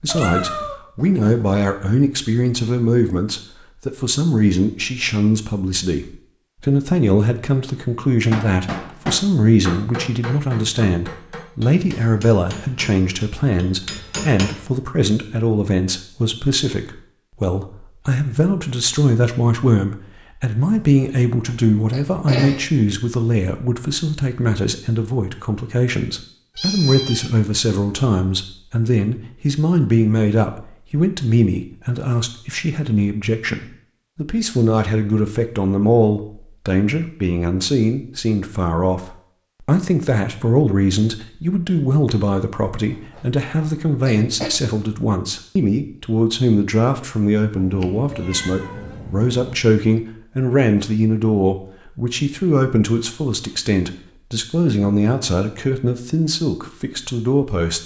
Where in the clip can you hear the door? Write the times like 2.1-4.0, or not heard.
not heard.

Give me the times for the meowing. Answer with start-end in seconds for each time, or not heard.
0.1-0.8, 26.6-27.3, 47.5-49.5.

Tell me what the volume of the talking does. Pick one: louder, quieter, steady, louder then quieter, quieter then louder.
steady.